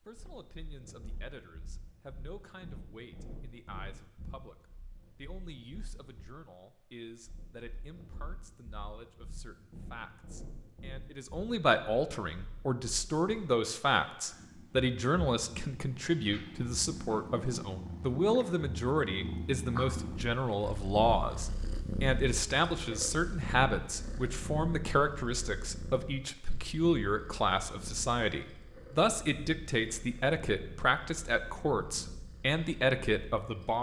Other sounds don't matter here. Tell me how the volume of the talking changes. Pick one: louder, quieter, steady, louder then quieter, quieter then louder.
louder.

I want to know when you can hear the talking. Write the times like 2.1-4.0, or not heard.
0.0-33.7.